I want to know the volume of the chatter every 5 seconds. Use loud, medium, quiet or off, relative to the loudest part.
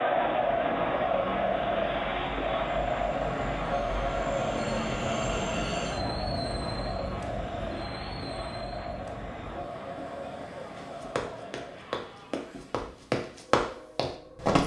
loud, medium, quiet.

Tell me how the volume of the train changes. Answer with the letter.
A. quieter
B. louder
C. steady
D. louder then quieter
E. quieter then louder
D.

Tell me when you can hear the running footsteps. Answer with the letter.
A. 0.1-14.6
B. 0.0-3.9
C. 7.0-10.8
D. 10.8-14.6
D.